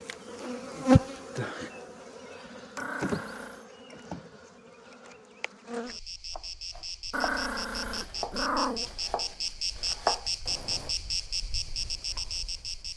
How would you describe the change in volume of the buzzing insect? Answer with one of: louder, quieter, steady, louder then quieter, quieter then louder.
quieter then louder.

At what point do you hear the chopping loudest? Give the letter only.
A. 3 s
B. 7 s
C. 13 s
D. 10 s
D.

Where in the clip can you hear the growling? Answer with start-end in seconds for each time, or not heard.
2.8-3.6, 7.1-8.9.